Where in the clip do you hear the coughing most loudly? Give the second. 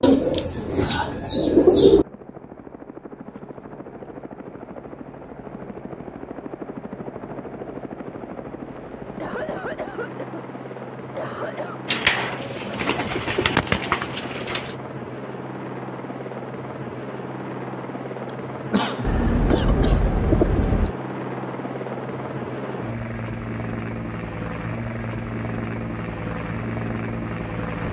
19 s.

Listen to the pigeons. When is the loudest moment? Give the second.
2 s.